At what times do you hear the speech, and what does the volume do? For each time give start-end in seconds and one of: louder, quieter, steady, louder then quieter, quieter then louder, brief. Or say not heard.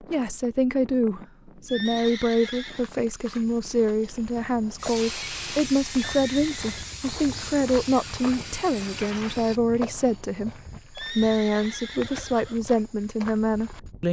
0.0-14.0 steady.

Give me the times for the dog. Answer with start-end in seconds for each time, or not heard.
not heard.